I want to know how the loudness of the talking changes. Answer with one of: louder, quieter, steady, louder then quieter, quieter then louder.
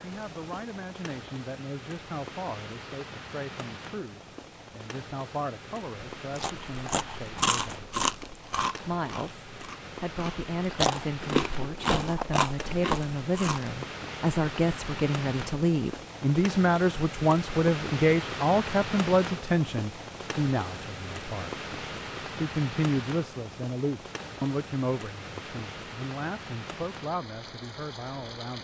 louder then quieter.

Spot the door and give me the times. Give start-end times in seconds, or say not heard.
11.8-12.2.